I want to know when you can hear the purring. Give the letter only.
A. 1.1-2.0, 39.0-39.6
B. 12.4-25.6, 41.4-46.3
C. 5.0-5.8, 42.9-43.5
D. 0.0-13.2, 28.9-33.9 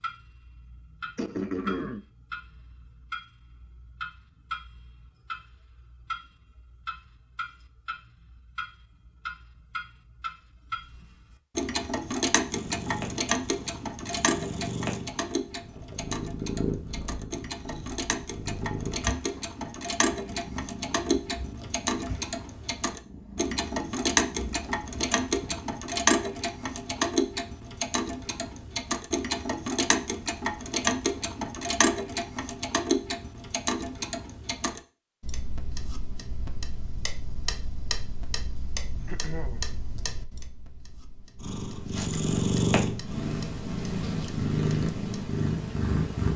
B.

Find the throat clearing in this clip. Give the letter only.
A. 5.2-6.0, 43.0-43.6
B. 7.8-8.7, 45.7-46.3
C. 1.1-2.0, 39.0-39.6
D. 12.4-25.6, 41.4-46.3
C.